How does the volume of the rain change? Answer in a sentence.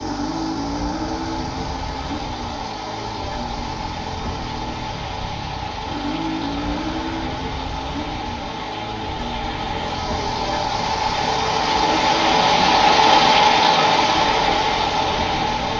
The volume of the rain goes up.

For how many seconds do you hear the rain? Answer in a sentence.
The rain can be heard for 16 seconds in total.